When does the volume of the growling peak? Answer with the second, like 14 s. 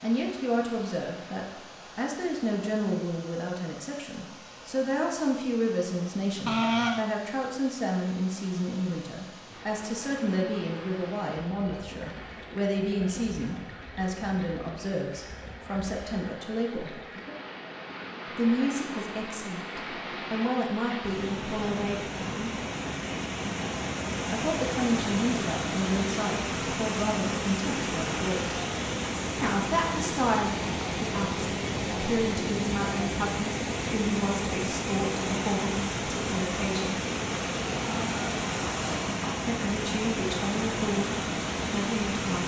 7 s.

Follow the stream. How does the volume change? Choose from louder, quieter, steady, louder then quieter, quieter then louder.
louder.